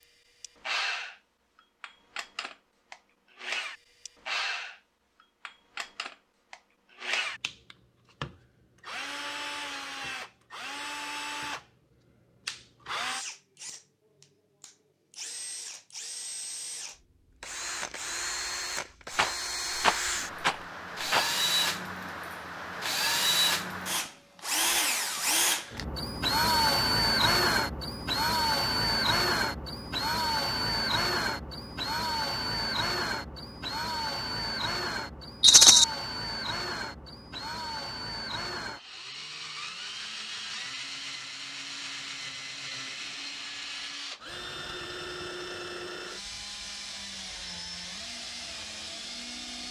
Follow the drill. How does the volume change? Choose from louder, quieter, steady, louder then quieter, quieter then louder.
louder then quieter.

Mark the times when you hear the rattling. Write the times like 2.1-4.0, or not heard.
19.1-21.3, 35.4-35.9.